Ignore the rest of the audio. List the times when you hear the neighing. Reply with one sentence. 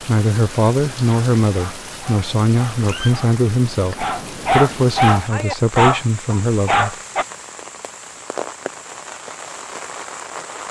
You can't hear the neighing here.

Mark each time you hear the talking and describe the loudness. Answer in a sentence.
You can hear the talking from 0.1 to 7.0 s, at a steady volume.